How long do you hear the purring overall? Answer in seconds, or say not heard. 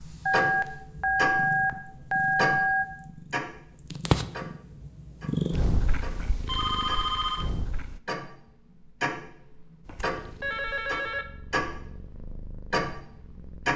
12 s.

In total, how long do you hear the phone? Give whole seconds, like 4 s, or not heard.
5 s.